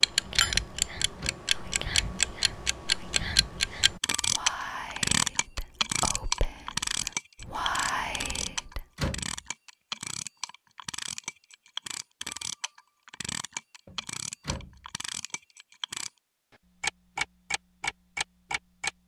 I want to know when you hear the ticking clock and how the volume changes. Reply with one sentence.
You can hear the ticking clock from 0.0 to 16.1 s, getting quieter; and briefly from 16.8 to 18.9 s.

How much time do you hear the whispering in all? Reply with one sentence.
The whispering can be heard for 9 seconds in total.